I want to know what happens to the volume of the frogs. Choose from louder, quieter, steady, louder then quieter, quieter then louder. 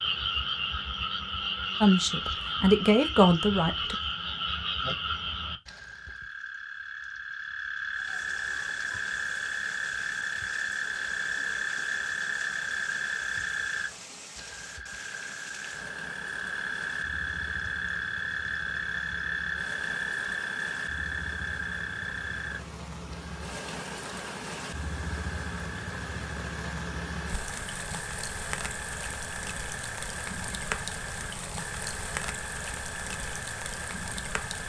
quieter.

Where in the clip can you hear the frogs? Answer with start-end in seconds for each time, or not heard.
0.0-34.6.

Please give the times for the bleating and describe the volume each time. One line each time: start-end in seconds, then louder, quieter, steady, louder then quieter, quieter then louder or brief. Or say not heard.
not heard.